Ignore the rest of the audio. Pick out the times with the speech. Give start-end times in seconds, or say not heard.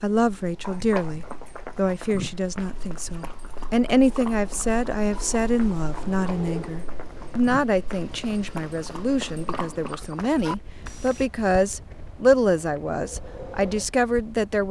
0.0-14.6.